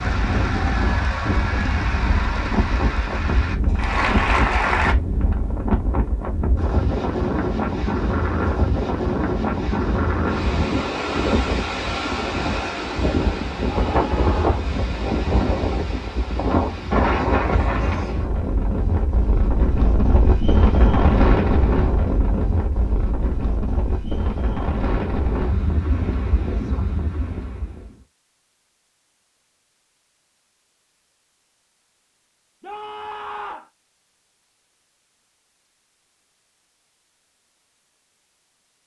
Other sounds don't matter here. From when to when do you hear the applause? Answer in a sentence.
You can hear the applause from 0.0 to 5.0 s.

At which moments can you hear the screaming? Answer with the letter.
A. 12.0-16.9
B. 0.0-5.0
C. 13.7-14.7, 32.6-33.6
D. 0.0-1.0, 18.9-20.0
C.